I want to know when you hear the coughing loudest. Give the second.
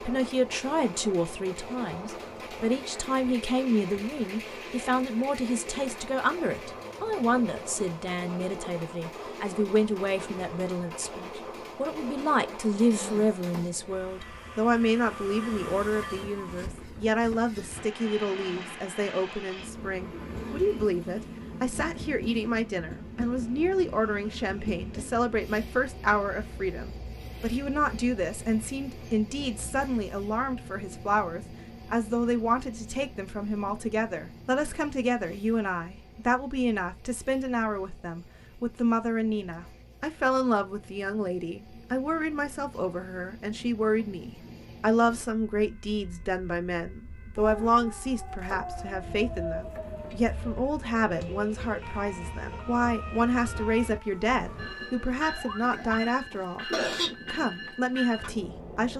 57 s.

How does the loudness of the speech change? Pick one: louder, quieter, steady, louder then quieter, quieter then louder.
steady.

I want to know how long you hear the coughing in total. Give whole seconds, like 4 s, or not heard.
2 s.